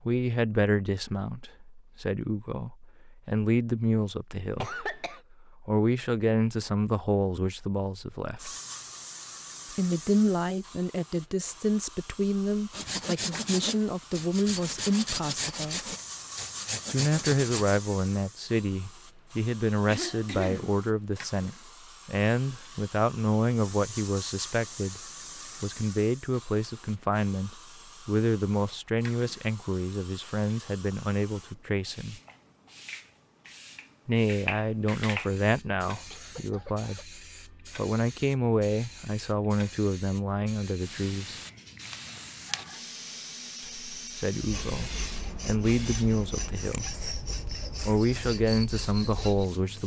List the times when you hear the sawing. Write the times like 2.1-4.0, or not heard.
12.7-17.8, 44.4-49.5.